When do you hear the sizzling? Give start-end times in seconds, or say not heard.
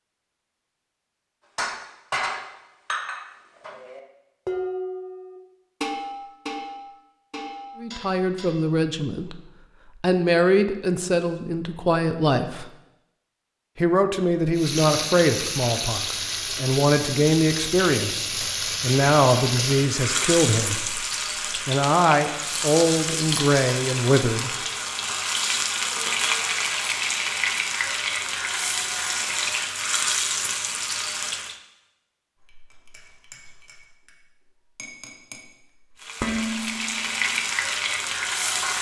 14.6-31.6, 36.0-38.7.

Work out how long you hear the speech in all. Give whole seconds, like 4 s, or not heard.
16 s.